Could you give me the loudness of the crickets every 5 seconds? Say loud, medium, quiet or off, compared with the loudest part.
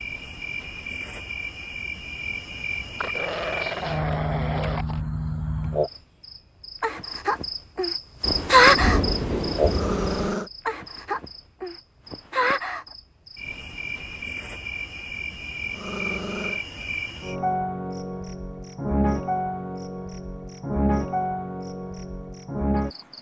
medium, loud, medium, medium, medium.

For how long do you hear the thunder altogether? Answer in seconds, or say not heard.
2 s.